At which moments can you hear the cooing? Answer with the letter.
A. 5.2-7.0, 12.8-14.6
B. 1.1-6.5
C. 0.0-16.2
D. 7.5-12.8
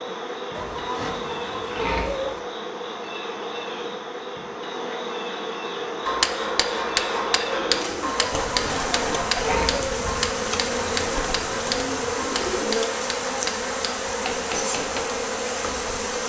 D.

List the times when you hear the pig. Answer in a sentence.
The pig can be heard from 0.6 to 2.4 s and from 8.2 to 9.9 s.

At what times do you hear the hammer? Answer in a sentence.
You can hear the hammer from 6.0 to 15.1 s.